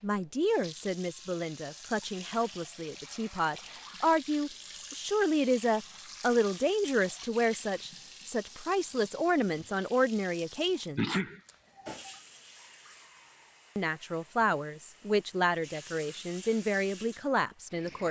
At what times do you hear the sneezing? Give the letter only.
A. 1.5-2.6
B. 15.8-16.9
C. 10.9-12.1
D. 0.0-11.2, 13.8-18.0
C.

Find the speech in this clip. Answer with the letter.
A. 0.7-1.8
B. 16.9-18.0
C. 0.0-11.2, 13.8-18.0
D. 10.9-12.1
C.